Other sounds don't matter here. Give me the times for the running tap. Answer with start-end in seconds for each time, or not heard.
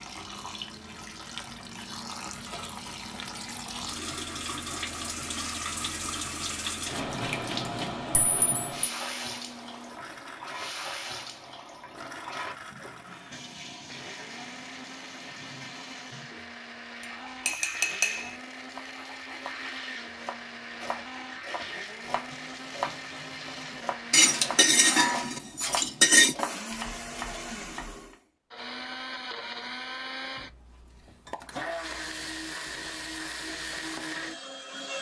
0.0-24.1.